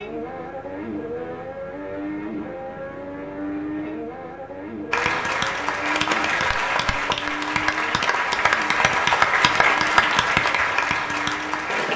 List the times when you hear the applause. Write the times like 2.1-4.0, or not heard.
4.9-11.9.